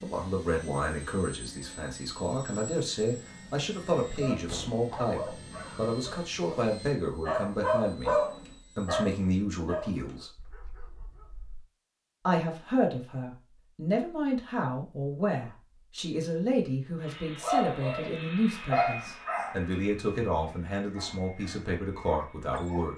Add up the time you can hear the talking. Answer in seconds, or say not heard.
20 s.